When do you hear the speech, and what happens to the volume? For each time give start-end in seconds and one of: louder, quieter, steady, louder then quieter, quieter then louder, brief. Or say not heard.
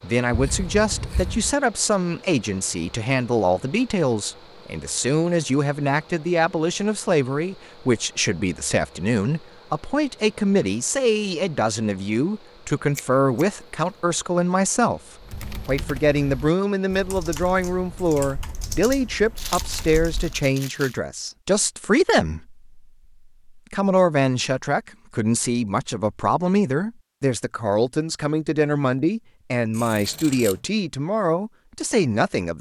0.0-15.0 steady
15.7-22.6 steady
23.6-32.5 steady.